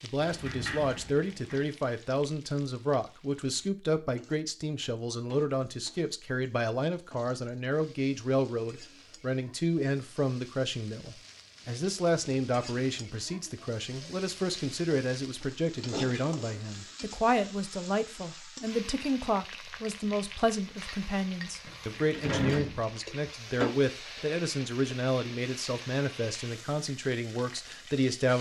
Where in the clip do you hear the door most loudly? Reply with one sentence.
The volume of the door peaks at 22 seconds.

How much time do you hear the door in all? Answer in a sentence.
You can hear the door for 4 seconds altogether.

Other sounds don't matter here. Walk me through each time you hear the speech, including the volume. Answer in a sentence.
The speech can be heard from 0.0 to 28.3 s, at a steady volume.